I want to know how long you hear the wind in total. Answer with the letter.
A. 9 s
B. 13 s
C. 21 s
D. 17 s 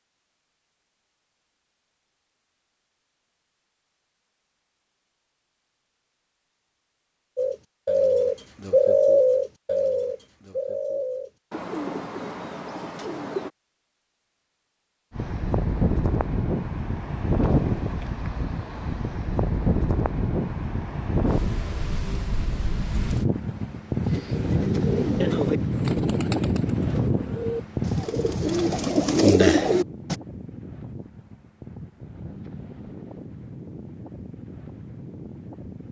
C.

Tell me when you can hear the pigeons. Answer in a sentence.
You can hear the pigeons from 7.3 to 13.5 s and from 24.0 to 30.1 s.